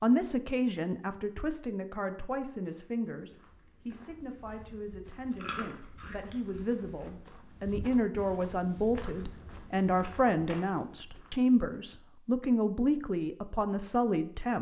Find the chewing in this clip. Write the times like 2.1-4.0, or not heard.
5.3-7.1.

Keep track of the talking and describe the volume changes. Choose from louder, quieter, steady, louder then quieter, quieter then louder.
quieter then louder.